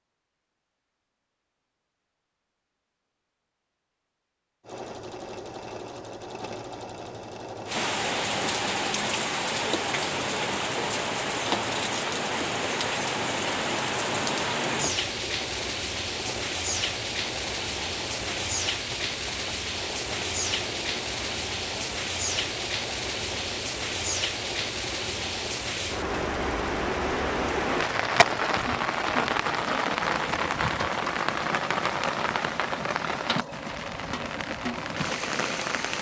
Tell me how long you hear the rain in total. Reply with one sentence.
You can hear the rain for 28 seconds altogether.